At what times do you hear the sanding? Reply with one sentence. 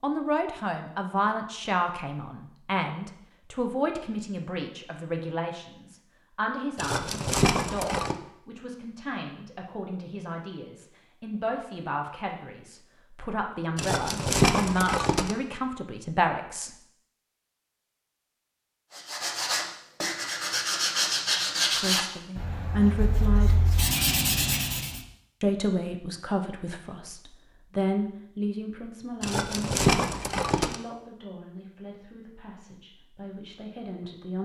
You can hear the sanding from 18.9 to 25.1 s.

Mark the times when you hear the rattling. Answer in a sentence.
You can hear the rattling from 6.8 to 8.2 s, from 13.8 to 15.3 s and from 29.2 to 30.8 s.